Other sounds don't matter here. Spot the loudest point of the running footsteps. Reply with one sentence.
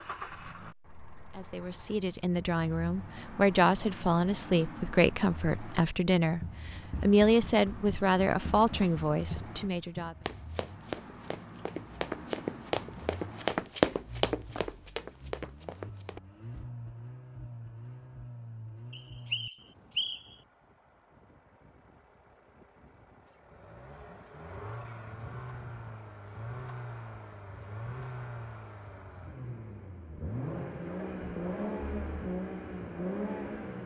The loudest moment of the running footsteps is at 14 seconds.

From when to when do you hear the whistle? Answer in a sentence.
You can hear the whistle from 18.9 to 20.4 s.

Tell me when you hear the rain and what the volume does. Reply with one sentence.
You can't hear the rain here.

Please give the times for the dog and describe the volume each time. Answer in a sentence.
You can't hear the dog here.